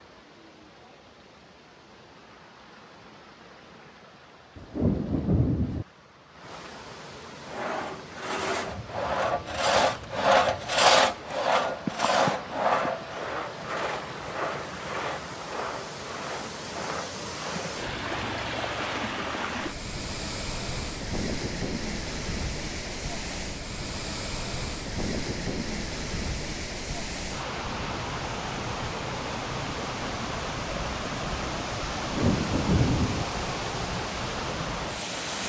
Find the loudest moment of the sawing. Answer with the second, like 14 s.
11 s.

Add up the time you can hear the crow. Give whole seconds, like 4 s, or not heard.
not heard.